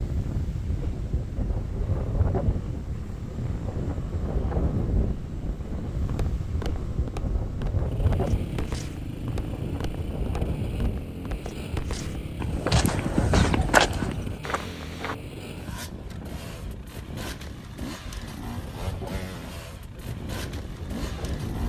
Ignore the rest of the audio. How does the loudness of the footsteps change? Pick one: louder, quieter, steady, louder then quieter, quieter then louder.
louder then quieter.